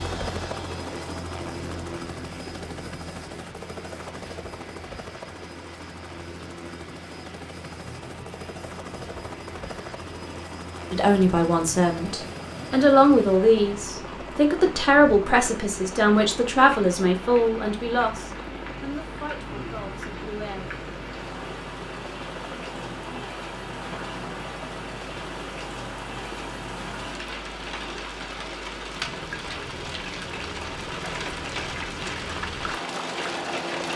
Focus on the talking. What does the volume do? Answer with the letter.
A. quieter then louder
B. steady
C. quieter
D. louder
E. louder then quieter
C.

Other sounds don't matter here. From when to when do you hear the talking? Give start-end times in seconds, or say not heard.
10.9-20.8.